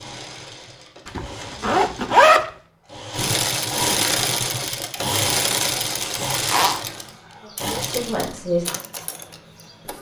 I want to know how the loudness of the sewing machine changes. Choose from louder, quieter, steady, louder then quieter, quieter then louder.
louder then quieter.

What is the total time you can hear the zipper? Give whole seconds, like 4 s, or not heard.
2 s.